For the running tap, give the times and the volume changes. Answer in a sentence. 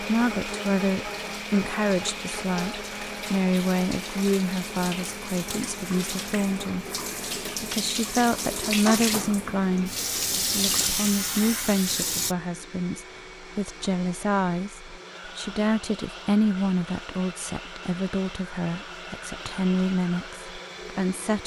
The running tap can be heard from 0.0 to 12.3 s, getting louder.